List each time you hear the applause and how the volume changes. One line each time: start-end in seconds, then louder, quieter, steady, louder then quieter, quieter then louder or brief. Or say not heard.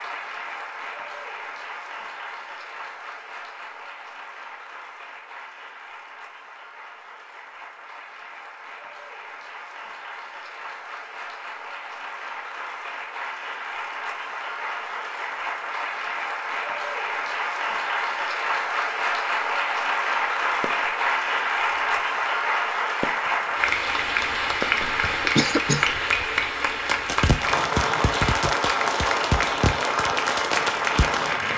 0.0-31.5 louder.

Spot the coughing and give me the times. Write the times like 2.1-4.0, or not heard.
25.2-25.9.